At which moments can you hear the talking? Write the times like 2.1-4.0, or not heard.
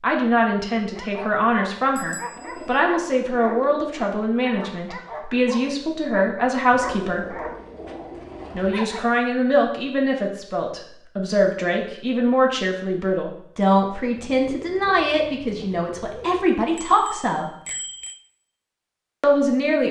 0.0-7.3, 8.6-17.4, 19.2-19.8.